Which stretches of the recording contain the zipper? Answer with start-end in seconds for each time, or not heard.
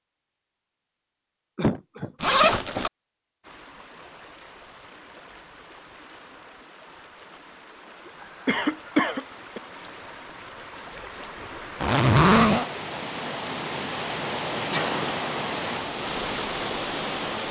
2.2-2.9, 11.8-12.7.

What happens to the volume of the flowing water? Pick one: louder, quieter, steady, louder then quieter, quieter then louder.
louder.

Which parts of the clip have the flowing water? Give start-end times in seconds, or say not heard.
3.4-17.4.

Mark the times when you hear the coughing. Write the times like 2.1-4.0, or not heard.
1.6-2.1, 8.4-9.6, 14.7-15.2.